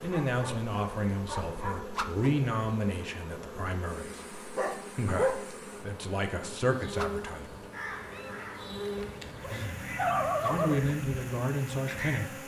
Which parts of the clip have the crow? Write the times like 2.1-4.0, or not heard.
7.7-12.3.